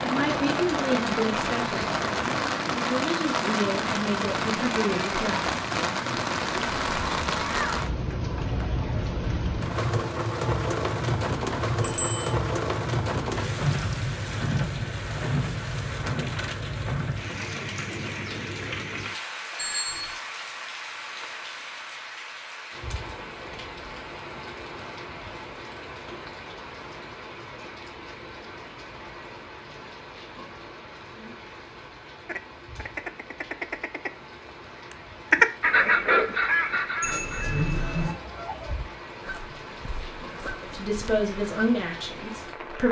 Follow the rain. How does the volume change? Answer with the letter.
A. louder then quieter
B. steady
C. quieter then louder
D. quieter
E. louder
D.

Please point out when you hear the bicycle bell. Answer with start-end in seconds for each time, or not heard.
11.8-12.3, 19.6-20.1, 37.0-38.1.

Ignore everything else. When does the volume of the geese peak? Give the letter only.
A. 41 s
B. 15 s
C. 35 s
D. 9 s
C.